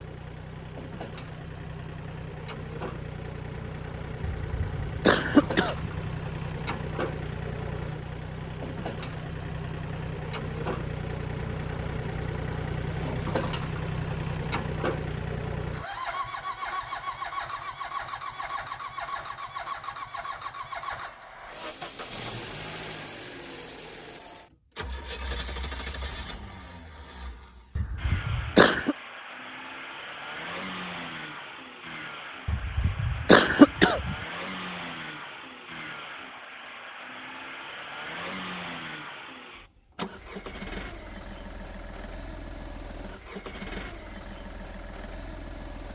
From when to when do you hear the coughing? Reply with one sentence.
You can hear the coughing from 4.4 to 6.1 s, from 27.8 to 28.9 s and from 32.5 to 34.1 s.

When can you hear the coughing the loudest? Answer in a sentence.
The loudest moment of the coughing is at 33 seconds.